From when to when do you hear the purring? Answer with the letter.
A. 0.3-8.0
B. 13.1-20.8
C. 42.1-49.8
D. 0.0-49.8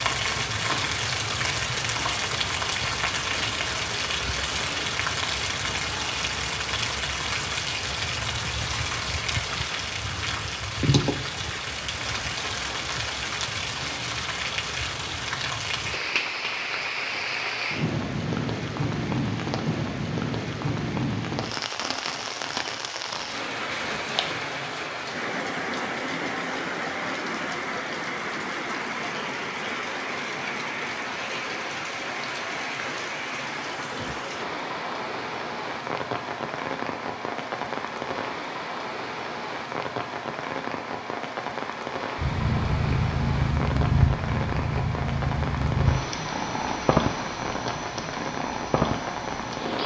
C.